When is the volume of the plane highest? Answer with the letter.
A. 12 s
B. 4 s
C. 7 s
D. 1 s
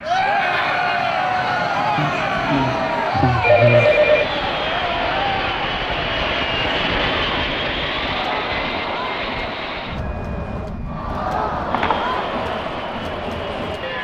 C.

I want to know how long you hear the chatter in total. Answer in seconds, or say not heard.
14 s.